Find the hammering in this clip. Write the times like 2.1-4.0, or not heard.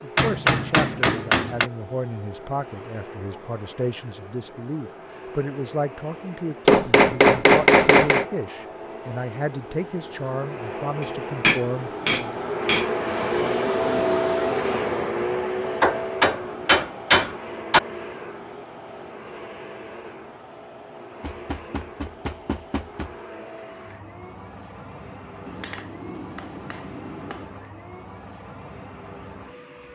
0.1-1.7, 6.7-8.2, 11.0-12.8, 15.8-17.8, 21.2-23.1, 25.4-27.4.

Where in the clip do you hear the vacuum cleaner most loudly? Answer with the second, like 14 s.
14 s.